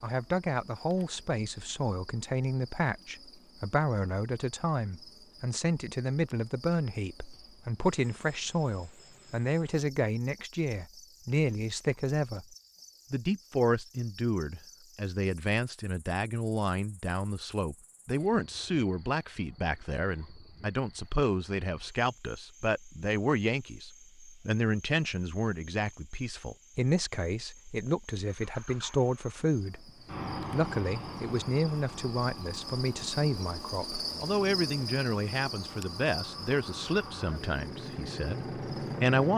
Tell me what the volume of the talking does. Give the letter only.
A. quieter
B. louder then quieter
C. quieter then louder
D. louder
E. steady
E.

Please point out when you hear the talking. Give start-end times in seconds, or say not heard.
0.0-12.4, 13.1-29.9, 30.5-39.3.